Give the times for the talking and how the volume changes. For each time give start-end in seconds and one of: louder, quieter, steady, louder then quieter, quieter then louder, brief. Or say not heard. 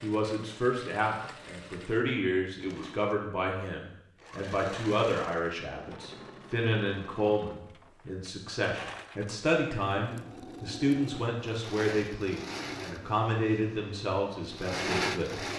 0.0-15.4 steady.